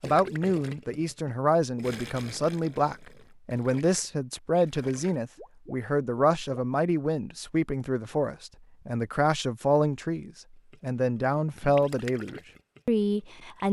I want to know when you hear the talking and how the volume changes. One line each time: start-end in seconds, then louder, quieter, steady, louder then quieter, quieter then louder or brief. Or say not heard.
0.0-13.6 steady.